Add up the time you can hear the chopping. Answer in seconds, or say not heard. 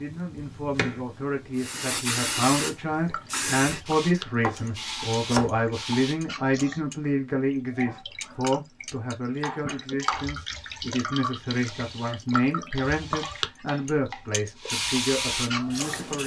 5 s.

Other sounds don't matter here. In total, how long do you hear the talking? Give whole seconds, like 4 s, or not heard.
16 s.